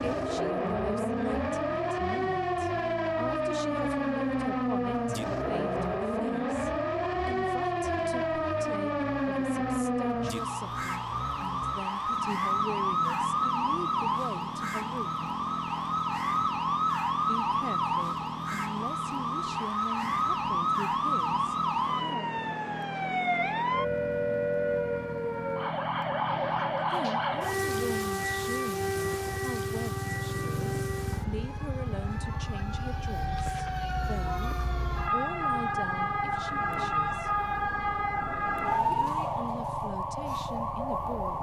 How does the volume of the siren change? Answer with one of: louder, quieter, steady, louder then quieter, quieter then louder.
steady.